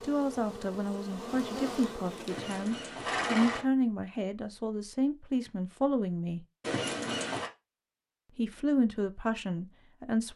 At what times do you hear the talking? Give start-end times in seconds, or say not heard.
0.0-6.5, 8.3-10.3.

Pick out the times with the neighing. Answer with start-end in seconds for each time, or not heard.
2.2-3.6, 6.6-7.5.